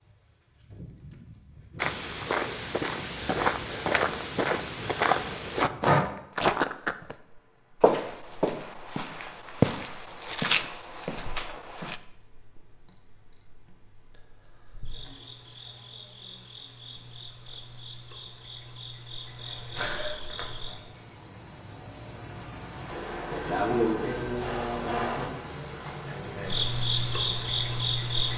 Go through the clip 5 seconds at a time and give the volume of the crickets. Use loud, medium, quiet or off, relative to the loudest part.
quiet, quiet, quiet, quiet, loud, loud.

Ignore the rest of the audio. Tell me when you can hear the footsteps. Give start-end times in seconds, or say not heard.
1.8-7.2, 7.8-12.0.